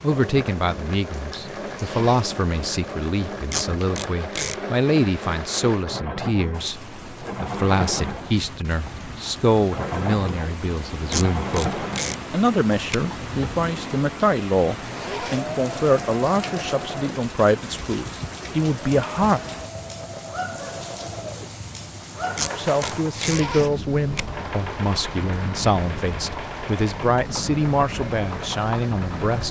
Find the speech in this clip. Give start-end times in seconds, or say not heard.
0.0-19.4, 22.6-29.4.